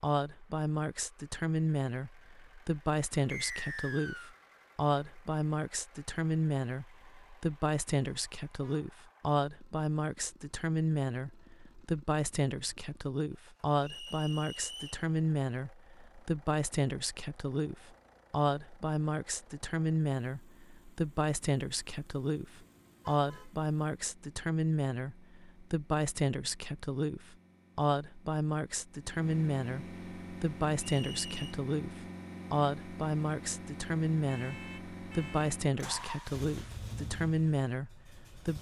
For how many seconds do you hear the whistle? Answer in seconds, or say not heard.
3 s.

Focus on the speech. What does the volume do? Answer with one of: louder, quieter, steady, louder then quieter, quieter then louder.
steady.